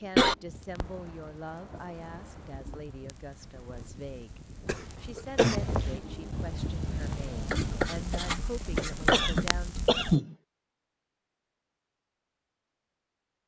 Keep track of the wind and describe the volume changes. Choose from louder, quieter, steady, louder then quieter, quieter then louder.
louder.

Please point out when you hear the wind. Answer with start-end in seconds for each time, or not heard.
0.0-8.2.